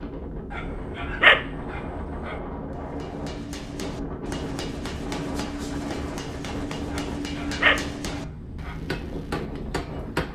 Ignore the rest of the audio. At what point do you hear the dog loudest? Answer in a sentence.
The volume of the dog peaks at 1 second.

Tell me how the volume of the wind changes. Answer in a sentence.
The volume of the wind stays about the same.